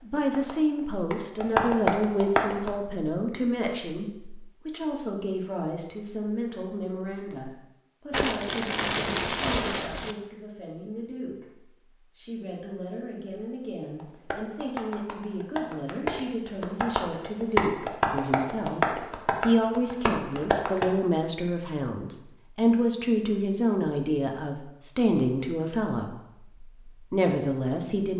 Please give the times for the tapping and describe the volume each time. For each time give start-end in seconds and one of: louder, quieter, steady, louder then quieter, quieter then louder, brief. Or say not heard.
0.0-2.7 brief
13.9-20.9 louder then quieter.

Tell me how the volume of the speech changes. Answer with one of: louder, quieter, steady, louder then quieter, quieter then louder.
quieter then louder.